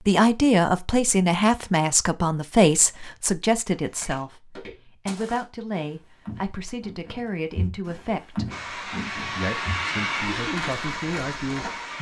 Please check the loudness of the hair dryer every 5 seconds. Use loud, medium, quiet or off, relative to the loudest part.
off, loud, loud.